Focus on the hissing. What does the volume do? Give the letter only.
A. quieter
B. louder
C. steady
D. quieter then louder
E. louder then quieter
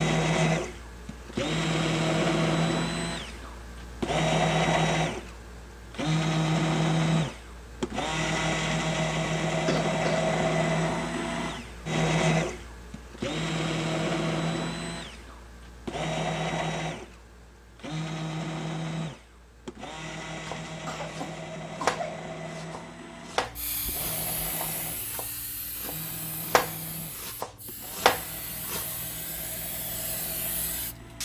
D.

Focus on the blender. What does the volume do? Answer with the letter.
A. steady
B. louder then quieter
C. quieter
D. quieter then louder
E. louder
C.